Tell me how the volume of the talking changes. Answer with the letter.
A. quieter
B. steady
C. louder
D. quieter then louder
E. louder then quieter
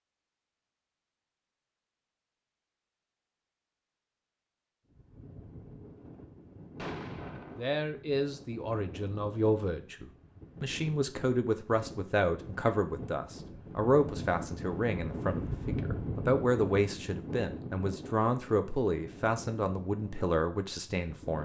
B.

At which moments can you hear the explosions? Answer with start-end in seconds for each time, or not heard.
6.8-7.7.